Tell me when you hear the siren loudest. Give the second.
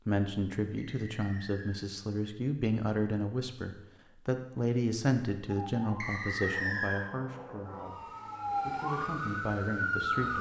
10 s.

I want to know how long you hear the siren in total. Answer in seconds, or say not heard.
5 s.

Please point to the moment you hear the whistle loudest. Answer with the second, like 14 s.
7 s.